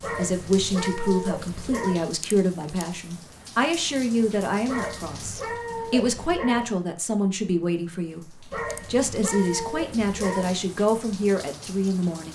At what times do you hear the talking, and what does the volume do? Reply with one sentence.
You can hear the talking from 0.1 to 12.3 s, at a steady volume.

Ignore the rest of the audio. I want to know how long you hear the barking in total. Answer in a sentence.
The barking can be heard for 6 seconds in total.